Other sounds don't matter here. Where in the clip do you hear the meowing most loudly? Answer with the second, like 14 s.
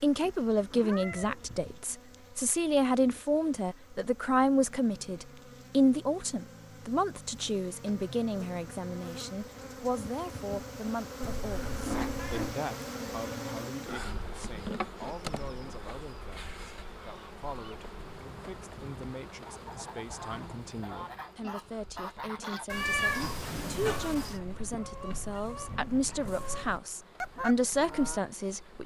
23 s.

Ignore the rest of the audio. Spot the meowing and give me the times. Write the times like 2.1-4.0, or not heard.
0.2-1.8, 11.2-12.6, 22.6-24.4.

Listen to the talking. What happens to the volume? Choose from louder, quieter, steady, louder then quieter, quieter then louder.
quieter then louder.